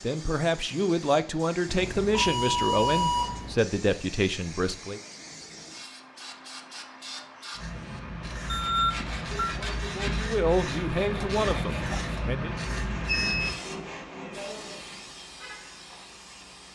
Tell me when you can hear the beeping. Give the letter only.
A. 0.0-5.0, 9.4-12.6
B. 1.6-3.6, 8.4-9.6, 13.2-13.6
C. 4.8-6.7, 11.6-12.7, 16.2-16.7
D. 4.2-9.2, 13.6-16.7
B.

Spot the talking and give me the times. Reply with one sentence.
The talking can be heard from 0.0 to 5.0 s and from 9.4 to 12.6 s.